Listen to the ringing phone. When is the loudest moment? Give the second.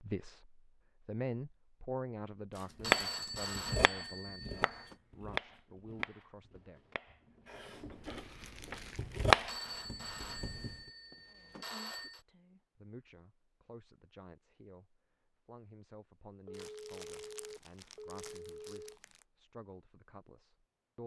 3 s.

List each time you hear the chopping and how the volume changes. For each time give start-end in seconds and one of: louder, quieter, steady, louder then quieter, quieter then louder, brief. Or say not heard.
2.8-10.8 quieter then louder.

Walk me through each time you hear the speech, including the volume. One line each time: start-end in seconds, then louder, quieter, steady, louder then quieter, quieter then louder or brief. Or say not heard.
0.0-6.8 quieter
11.2-21.0 steady.